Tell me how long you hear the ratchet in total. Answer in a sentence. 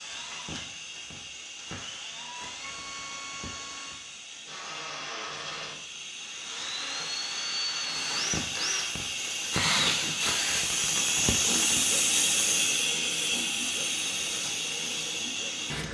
The ratchet can't be heard in this clip.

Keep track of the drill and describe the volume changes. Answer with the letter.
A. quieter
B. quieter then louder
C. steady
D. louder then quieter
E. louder
D.